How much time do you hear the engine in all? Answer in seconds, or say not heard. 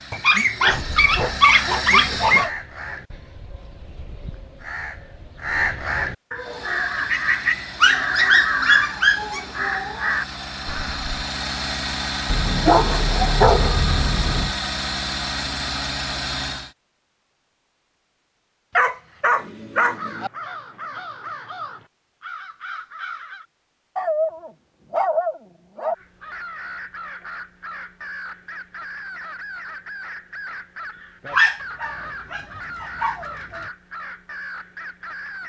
13 s.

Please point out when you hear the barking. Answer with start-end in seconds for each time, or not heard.
0.1-2.5, 7.8-9.4, 12.2-14.6, 18.8-20.3, 23.9-25.9, 31.3-33.6.